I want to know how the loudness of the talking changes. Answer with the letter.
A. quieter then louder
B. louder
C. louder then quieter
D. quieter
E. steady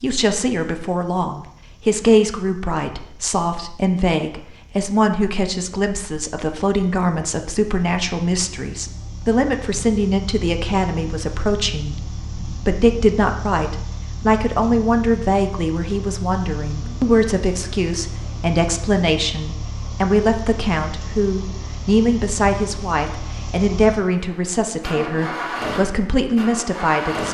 E.